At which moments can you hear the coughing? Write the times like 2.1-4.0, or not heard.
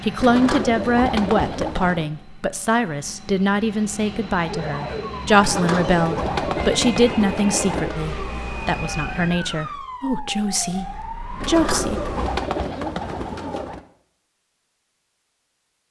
not heard.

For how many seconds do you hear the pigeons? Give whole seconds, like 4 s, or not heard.
7 s.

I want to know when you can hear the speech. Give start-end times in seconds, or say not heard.
0.0-12.0.